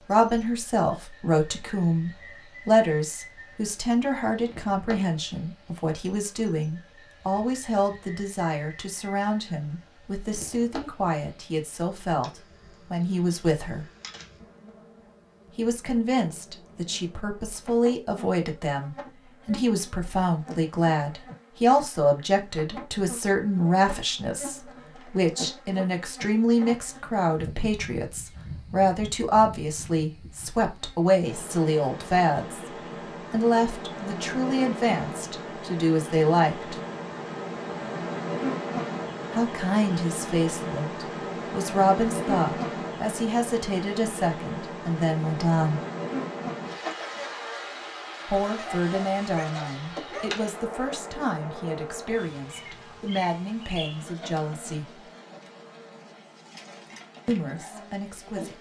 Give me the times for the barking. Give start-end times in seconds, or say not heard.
48.5-50.4.